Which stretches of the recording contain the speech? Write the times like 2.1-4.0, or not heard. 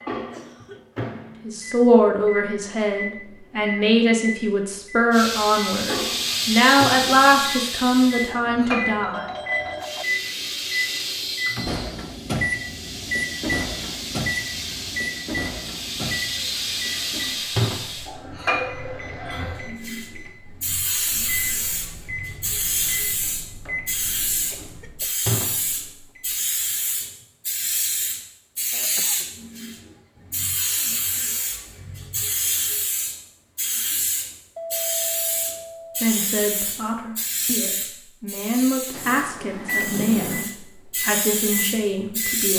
1.4-9.2, 36.0-42.5.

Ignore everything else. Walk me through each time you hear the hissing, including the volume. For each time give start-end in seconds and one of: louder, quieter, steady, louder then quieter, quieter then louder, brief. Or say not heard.
5.1-42.5 steady.